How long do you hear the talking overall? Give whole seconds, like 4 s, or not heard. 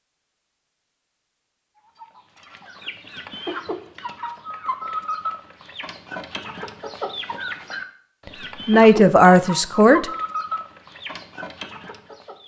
2 s.